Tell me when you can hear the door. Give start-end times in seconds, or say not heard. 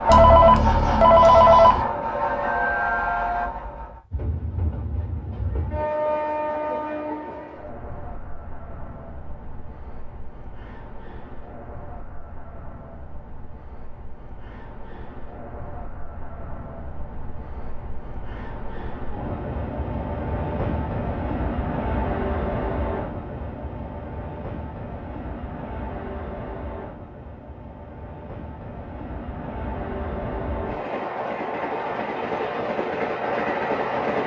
not heard.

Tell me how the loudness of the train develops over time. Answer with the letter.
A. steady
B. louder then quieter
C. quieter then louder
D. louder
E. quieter
C.